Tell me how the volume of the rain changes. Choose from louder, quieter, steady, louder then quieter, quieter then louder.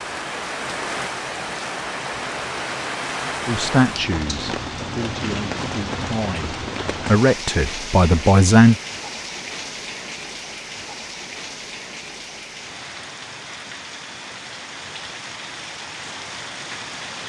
quieter.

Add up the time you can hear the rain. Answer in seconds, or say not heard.
17 s.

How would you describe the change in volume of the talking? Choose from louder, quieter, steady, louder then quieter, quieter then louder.
louder.